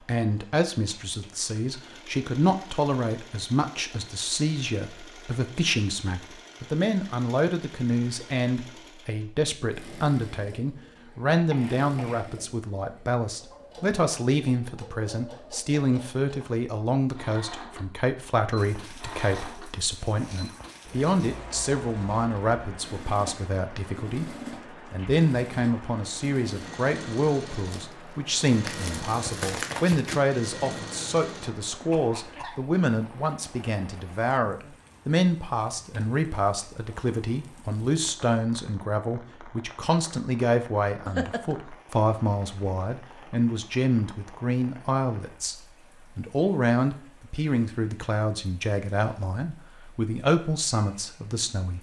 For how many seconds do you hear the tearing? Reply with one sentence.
You can hear the tearing for 3 seconds altogether.